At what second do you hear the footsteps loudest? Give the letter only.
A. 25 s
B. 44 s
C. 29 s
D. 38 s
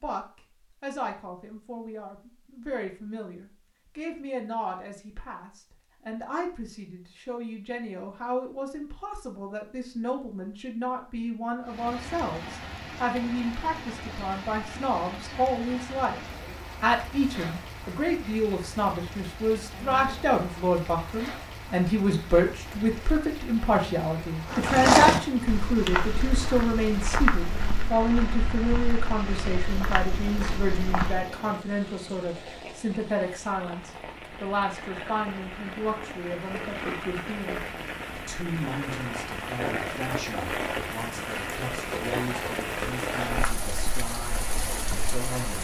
A.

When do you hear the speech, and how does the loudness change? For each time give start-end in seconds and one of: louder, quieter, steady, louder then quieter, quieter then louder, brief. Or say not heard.
0.0-16.2 louder
16.8-45.5 quieter.